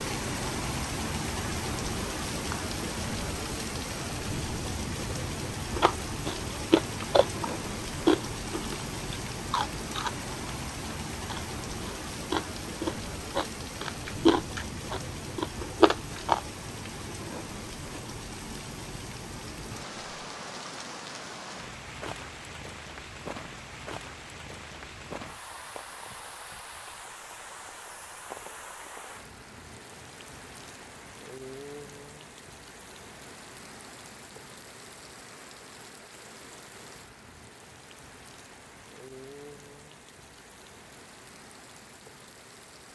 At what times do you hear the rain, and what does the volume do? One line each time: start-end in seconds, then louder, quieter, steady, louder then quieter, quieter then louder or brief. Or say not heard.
0.0-42.8 quieter.